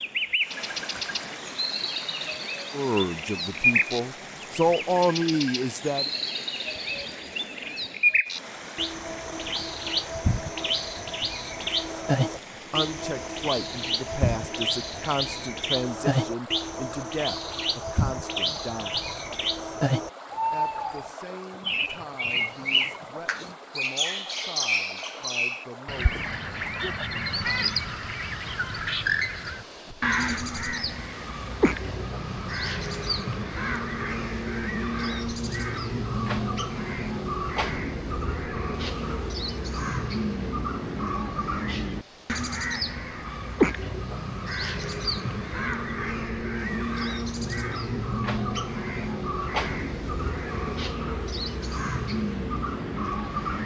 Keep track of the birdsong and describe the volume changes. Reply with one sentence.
The loudness of the birdsong stays about the same.